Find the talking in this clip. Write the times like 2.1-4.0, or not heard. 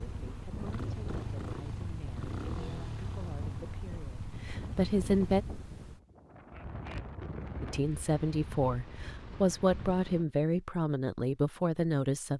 0.0-5.5, 7.6-12.3.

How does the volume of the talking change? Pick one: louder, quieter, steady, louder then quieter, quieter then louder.
louder.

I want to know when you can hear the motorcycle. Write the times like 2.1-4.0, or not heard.
0.0-5.5.